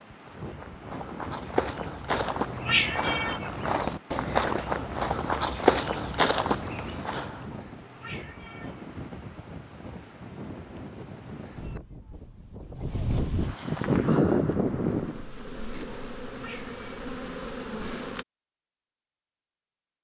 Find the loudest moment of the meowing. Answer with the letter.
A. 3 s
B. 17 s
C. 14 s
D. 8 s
A.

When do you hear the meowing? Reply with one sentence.
The meowing can be heard from 2.1 to 3.5 s, from 7.5 to 8.8 s and from 15.8 to 16.8 s.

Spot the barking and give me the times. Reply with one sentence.
The barking can't be heard in this clip.